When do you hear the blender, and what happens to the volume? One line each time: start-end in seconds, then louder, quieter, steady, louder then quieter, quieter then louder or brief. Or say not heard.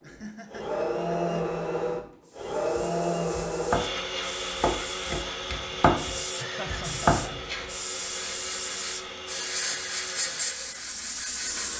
0.0-11.7 quieter.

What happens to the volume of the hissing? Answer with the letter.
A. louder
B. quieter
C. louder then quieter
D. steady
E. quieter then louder
A.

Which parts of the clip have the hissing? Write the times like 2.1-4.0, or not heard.
2.2-11.7.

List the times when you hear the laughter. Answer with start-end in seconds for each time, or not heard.
0.0-1.6, 6.4-7.5.